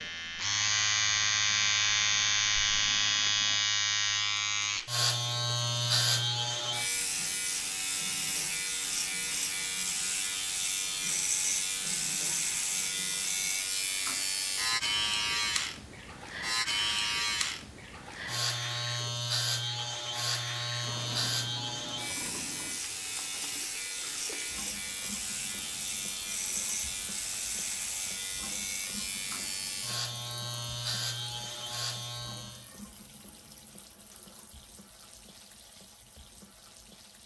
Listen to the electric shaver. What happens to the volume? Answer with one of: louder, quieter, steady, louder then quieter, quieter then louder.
quieter.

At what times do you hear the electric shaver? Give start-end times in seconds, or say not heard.
0.0-32.7.